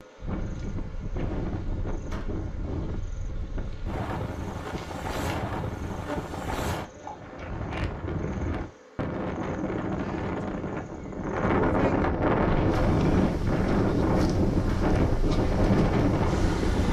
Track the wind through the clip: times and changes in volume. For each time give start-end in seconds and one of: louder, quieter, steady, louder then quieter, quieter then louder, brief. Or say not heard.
0.0-16.8 louder.